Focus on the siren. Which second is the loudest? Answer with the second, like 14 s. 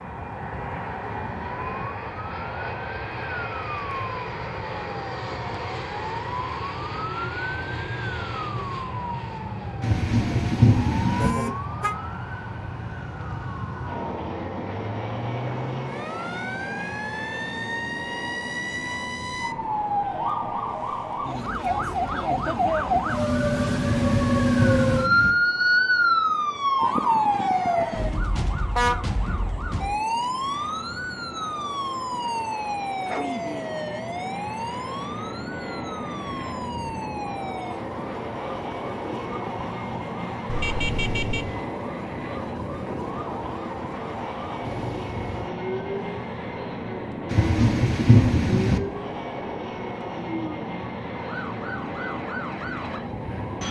26 s.